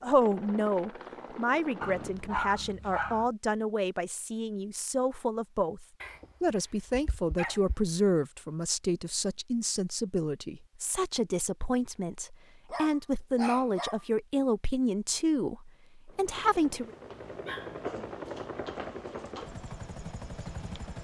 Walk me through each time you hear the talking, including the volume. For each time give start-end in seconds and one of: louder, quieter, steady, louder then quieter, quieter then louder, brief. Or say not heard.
0.0-16.9 steady.